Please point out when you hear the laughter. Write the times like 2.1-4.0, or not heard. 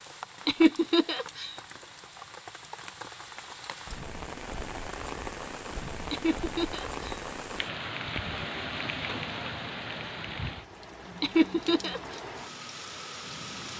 0.5-1.6, 6.1-7.2, 11.2-12.2.